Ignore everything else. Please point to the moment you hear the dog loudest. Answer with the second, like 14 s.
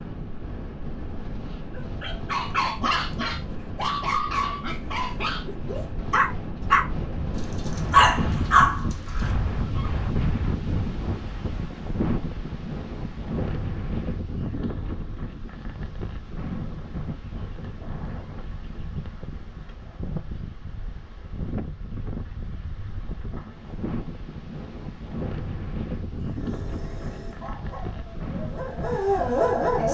8 s.